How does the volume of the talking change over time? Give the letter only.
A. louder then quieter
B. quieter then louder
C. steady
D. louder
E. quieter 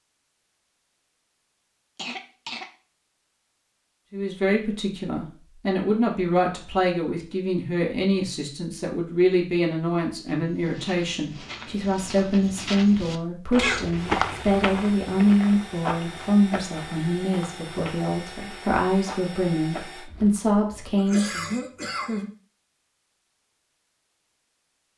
C.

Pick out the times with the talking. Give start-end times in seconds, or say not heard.
4.1-21.6.